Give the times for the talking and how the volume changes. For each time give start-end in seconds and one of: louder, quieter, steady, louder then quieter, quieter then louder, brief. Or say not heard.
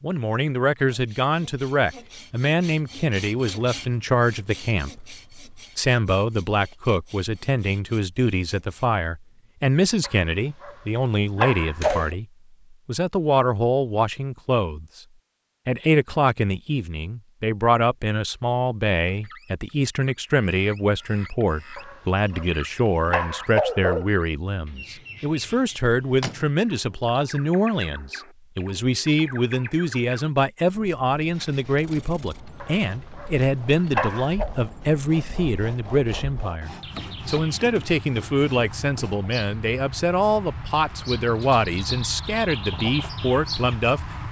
0.0-15.0 steady
15.7-44.2 steady.